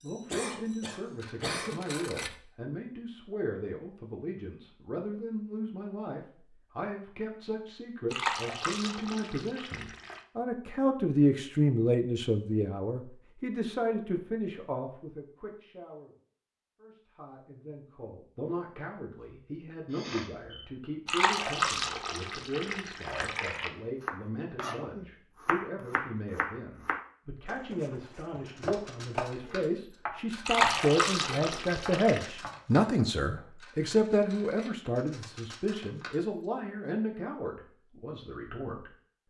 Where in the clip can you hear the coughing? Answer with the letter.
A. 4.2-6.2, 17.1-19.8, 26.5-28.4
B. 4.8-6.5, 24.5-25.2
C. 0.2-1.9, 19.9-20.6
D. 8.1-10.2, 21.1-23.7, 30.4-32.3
C.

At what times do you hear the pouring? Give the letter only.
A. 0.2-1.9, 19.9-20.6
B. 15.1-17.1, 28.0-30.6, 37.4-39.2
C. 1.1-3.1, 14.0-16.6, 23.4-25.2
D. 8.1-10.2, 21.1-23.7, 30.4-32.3
D.